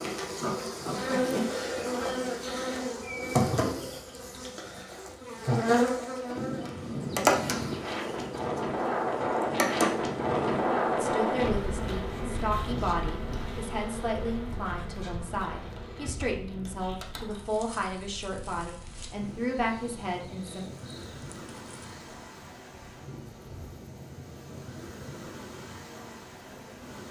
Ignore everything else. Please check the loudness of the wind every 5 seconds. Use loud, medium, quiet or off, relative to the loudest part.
off, loud, loud, quiet, quiet, quiet.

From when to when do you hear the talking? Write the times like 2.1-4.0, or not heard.
10.9-20.6.